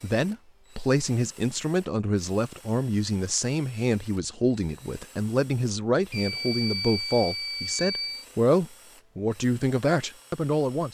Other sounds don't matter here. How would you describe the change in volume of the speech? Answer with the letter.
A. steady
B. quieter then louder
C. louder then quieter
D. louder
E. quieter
A.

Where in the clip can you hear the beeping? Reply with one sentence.
The beeping can be heard from 6.1 to 8.2 s.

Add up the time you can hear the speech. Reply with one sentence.
The speech can be heard for 11 seconds in total.